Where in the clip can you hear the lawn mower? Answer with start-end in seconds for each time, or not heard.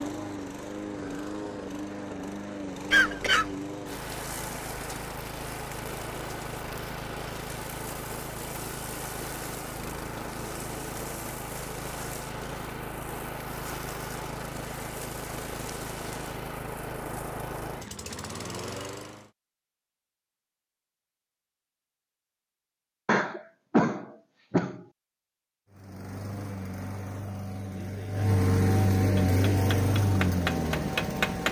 0.0-19.3, 25.7-31.4.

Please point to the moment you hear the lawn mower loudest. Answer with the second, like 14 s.
29 s.